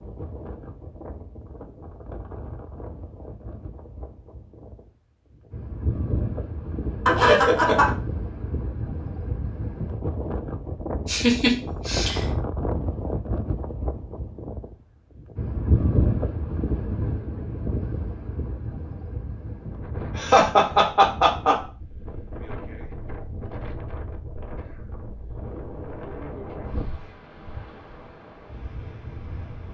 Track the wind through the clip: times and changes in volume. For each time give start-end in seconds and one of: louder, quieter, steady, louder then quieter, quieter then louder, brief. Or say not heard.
0.0-29.6 louder then quieter.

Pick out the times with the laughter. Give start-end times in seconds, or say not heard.
7.0-7.9, 11.1-12.2, 20.1-21.6.